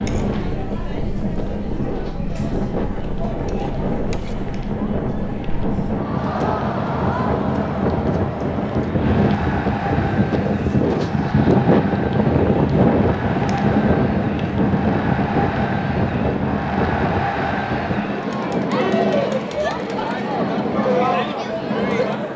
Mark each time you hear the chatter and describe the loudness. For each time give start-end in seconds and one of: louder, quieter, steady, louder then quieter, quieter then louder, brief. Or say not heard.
0.0-22.3 louder.